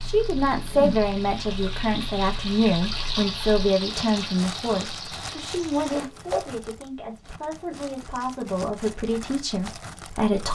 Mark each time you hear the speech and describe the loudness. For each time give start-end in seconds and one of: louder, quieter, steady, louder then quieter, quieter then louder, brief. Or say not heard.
0.0-10.4 quieter then louder.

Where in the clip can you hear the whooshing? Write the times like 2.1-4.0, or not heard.
0.6-1.1, 5.9-6.5.